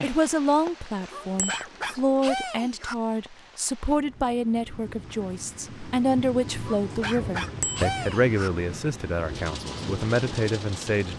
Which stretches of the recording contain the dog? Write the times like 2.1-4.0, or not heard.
1.1-3.0, 6.7-8.5.